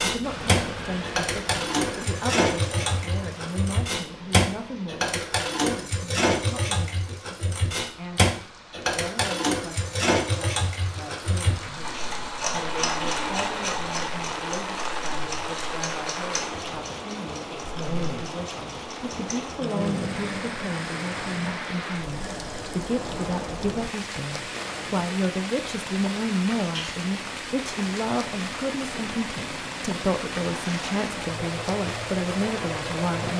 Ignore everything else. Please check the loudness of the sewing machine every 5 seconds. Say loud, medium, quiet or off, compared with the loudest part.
loud, loud, loud, medium, medium, quiet, medium.